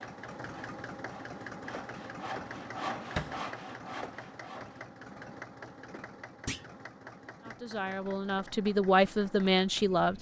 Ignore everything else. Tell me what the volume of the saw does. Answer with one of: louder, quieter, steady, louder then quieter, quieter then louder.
louder then quieter.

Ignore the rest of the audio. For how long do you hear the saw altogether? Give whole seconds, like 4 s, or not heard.
5 s.